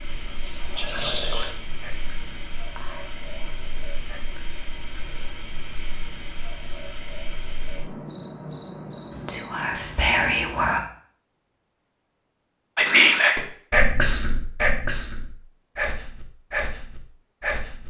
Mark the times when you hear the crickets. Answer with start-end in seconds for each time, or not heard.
0.0-9.8.